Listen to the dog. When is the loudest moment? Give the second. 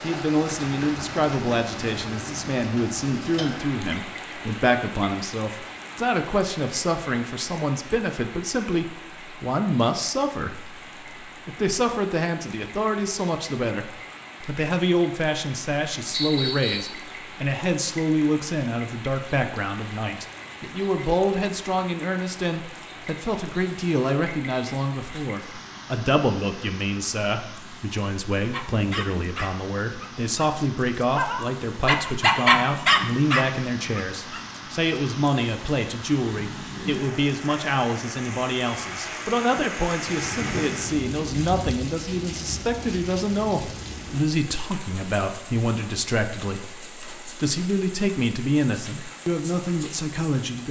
32 s.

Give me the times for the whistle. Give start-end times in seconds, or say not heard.
16.1-16.9.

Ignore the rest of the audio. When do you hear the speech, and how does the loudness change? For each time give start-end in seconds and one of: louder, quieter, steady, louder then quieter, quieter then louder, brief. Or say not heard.
0.0-50.6 steady.